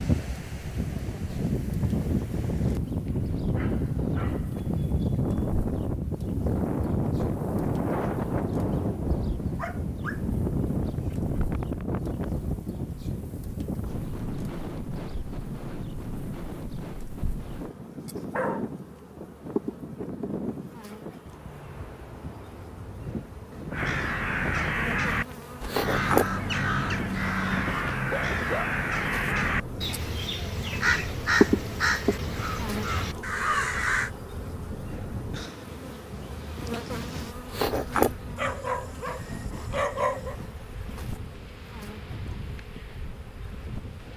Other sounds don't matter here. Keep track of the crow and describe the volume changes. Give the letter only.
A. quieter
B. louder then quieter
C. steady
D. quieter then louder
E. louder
C.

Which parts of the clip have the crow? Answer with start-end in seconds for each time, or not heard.
23.7-34.1.